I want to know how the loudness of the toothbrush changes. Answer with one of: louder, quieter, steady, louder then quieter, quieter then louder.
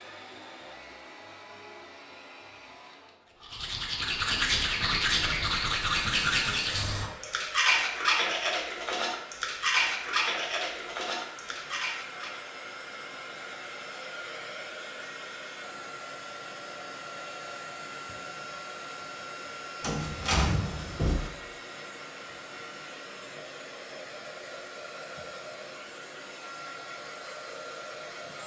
quieter.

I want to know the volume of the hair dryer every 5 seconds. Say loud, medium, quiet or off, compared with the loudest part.
medium, medium, loud, loud, loud, loud.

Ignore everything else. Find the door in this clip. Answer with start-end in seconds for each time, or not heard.
19.8-21.3.